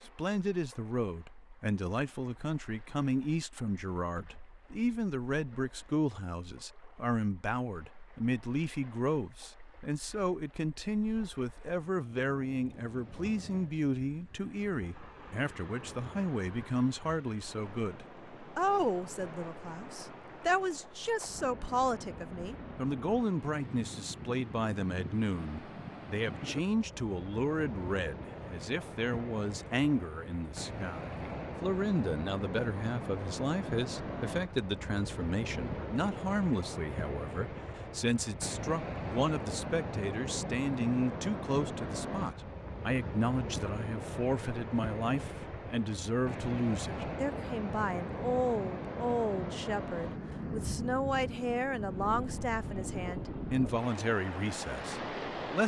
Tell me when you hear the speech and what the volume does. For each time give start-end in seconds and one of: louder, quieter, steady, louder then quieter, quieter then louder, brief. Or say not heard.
0.0-55.6 steady.